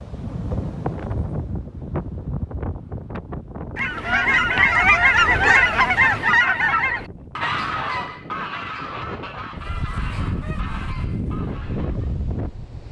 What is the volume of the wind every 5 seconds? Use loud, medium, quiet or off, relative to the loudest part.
loud, medium, loud.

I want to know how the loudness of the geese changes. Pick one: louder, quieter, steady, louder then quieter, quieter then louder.
quieter.